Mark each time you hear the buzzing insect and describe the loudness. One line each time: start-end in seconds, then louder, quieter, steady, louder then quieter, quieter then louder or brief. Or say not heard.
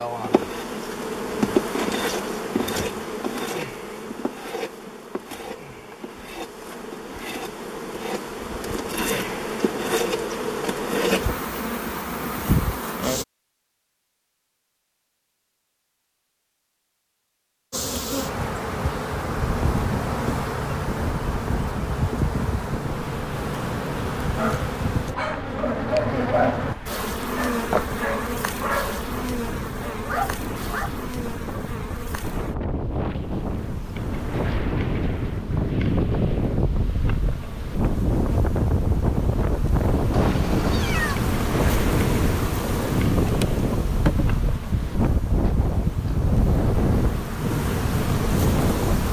0.0-13.2 quieter then louder
17.7-49.0 quieter then louder.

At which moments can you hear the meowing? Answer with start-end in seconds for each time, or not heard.
40.1-41.2.